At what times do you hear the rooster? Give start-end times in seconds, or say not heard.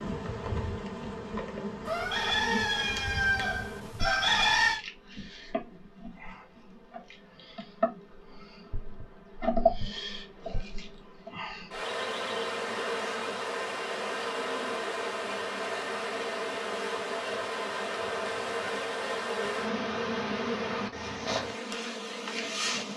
1.9-4.8.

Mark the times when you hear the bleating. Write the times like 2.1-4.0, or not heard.
not heard.